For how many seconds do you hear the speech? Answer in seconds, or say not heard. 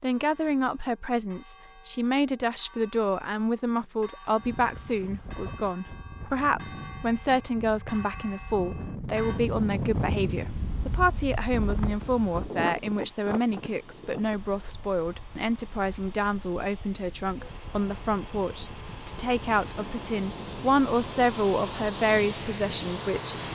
23 s.